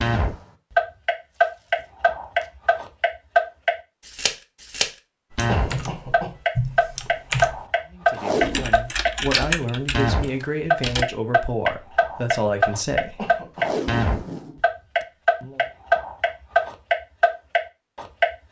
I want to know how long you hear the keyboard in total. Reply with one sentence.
You can hear the keyboard for 5 seconds altogether.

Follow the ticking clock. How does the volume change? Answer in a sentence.
The volume of the ticking clock stays about the same.